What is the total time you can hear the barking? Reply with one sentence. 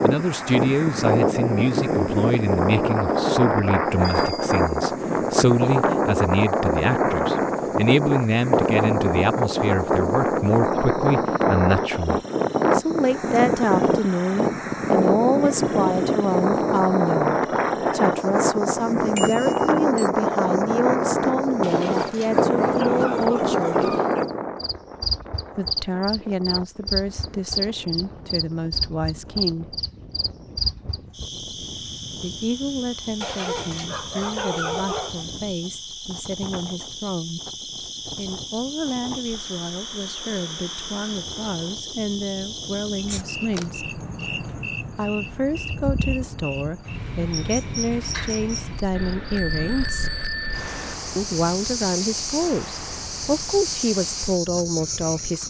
The barking can be heard for 5 seconds in total.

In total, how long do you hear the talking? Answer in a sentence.
You can hear the talking for 49 seconds altogether.